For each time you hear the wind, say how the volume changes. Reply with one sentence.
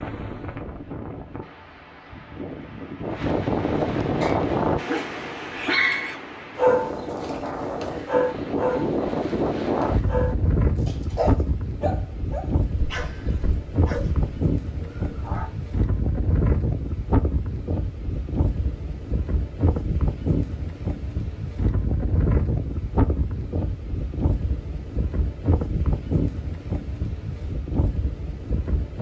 You can hear the wind from 0.0 to 28.9 s, at a steady volume.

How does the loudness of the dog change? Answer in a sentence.
The loudness of the dog goes down.